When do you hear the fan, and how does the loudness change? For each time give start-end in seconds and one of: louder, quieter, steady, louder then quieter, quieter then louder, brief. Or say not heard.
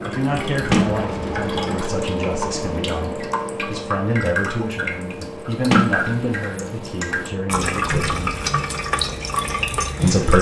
0.0-10.2 quieter.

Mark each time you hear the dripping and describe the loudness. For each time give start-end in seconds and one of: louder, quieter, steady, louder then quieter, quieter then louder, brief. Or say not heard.
0.0-10.3 louder.